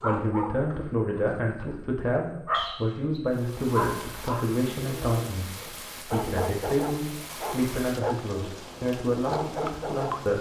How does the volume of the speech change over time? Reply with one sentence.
The loudness of the speech stays about the same.